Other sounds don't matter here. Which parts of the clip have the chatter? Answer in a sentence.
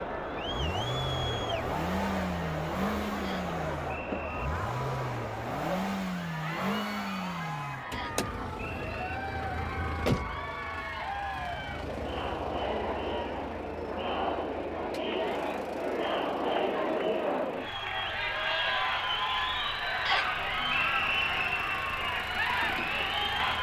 The chatter can be heard from 0.0 to 23.5 s.